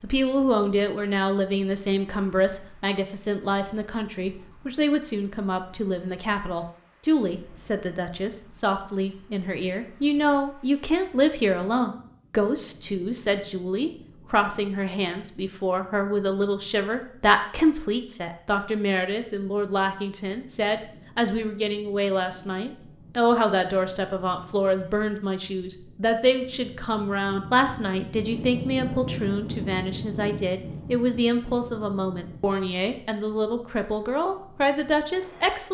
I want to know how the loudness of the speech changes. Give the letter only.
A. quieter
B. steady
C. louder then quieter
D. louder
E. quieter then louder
B.